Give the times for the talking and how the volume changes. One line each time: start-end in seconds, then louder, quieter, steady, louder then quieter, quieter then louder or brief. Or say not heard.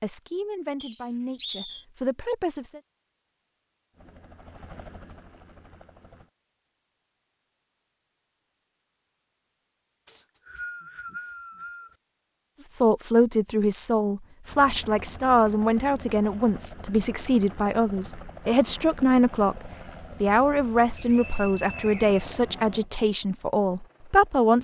0.0-2.8 brief
12.8-24.6 steady.